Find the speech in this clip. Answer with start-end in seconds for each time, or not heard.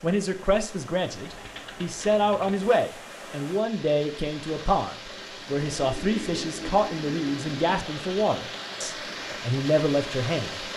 0.0-10.7.